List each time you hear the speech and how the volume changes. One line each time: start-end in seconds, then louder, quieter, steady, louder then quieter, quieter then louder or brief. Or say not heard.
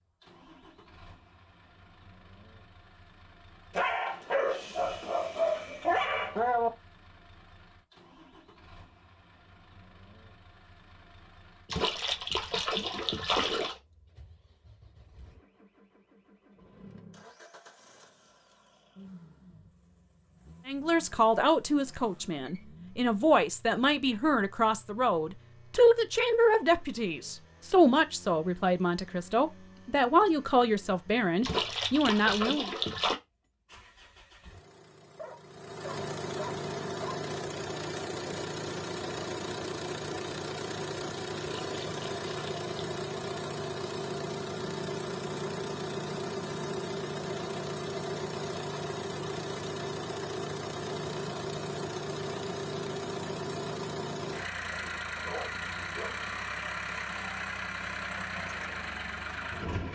20.6-32.7 steady.